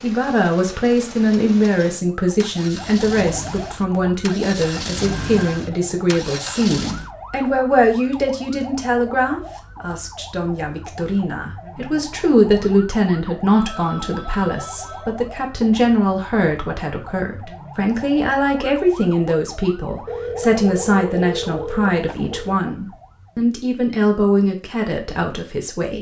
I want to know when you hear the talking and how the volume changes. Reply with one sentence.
You can hear the talking from 0.0 to 25.9 s, at a steady volume.